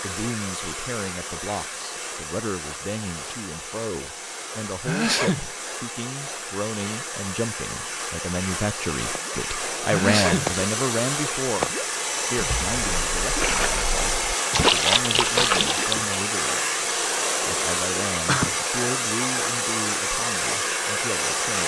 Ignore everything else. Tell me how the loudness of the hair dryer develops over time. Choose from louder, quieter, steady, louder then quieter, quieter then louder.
louder.